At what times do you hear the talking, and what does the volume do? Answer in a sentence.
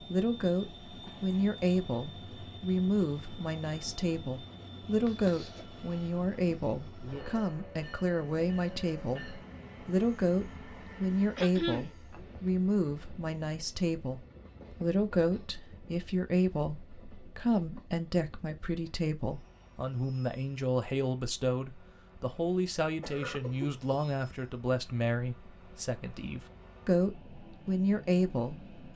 The talking can be heard from 0.0 to 28.7 s, at a steady volume.